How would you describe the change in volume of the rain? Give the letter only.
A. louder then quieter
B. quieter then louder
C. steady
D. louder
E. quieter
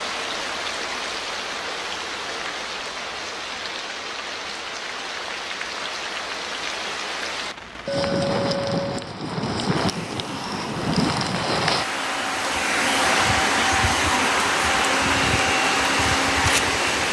D.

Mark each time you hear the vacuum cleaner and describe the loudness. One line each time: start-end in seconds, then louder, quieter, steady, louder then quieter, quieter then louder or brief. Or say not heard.
9.8-17.0 louder.